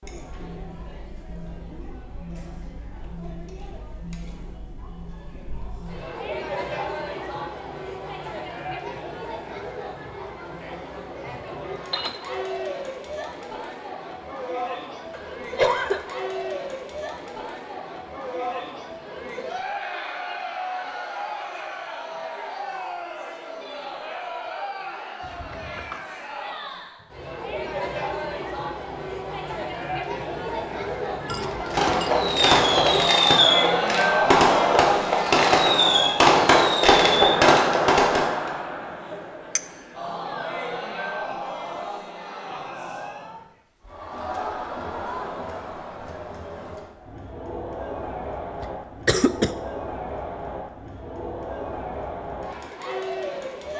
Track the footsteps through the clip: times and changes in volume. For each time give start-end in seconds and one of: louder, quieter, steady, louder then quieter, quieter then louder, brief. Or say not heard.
not heard.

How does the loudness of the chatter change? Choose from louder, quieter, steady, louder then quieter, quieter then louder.
louder then quieter.